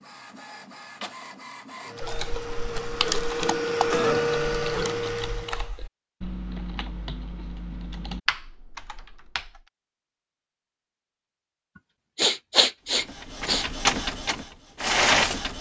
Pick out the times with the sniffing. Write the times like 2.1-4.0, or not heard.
12.2-13.7.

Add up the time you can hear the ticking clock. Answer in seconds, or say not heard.
not heard.